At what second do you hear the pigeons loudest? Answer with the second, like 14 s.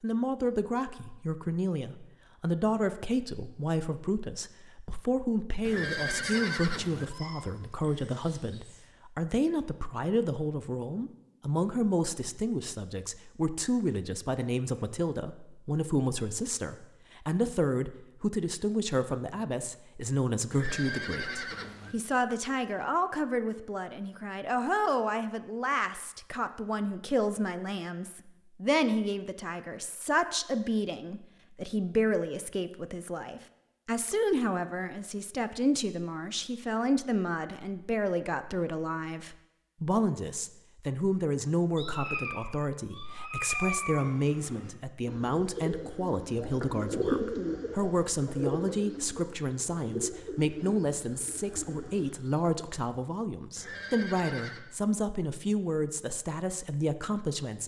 47 s.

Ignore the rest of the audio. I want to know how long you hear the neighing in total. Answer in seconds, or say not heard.
4 s.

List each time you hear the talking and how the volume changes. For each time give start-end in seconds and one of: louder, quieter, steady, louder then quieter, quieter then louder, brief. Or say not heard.
0.0-57.6 steady.